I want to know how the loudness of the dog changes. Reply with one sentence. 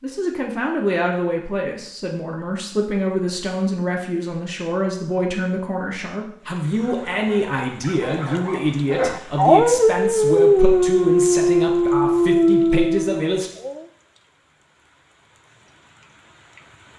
The loudness of the dog goes up.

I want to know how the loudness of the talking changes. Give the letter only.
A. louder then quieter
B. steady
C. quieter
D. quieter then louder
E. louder
B.